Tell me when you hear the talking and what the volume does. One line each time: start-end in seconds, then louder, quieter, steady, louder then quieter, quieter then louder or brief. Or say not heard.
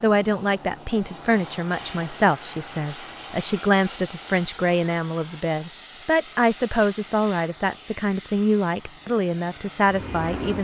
0.0-10.5 steady.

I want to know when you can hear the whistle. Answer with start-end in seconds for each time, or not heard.
not heard.